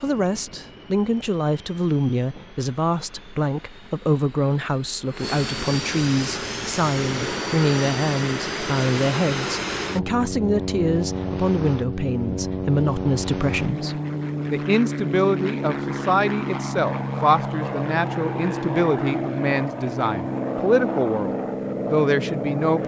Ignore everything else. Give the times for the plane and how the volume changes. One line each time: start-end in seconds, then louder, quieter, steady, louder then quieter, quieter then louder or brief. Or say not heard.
0.0-22.8 louder.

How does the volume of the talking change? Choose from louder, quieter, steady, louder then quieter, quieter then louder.
steady.